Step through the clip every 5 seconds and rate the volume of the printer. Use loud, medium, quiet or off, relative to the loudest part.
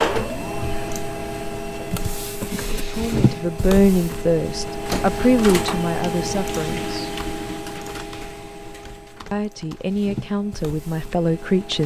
loud, loud, medium.